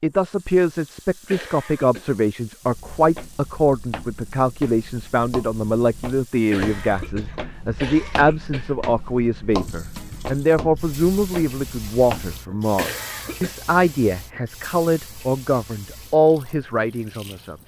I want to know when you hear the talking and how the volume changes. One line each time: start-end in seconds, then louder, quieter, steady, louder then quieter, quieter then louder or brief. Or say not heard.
0.0-17.6 steady.